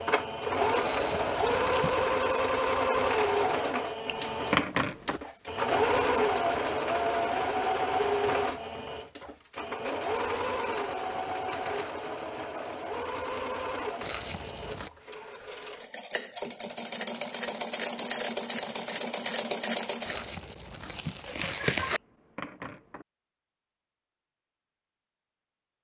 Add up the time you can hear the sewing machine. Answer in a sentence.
You can hear the sewing machine for 20 seconds altogether.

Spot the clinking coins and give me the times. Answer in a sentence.
You can't hear the clinking coins here.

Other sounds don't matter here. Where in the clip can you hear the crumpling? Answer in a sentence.
You can hear the crumpling from 0.8 to 2.2 s, from 14.0 to 14.9 s and from 20.1 to 22.0 s.